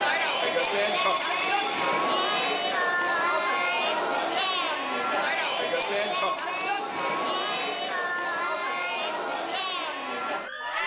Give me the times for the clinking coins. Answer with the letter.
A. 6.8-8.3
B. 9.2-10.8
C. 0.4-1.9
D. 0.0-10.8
C.